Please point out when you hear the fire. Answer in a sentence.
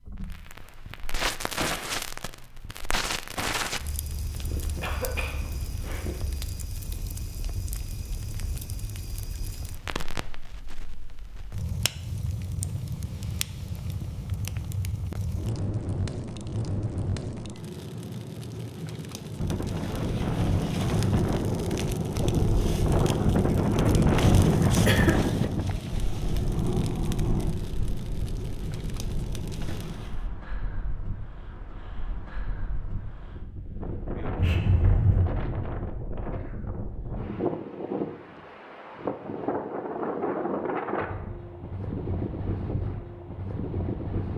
You can hear the fire from 0.0 to 30.2 s.